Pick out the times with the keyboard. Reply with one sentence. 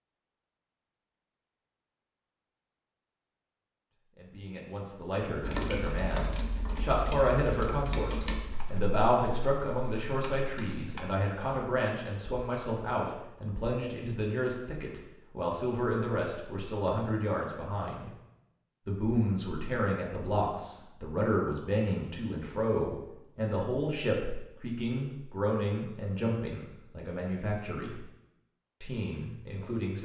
The keyboard can be heard from 5.4 to 11.1 s.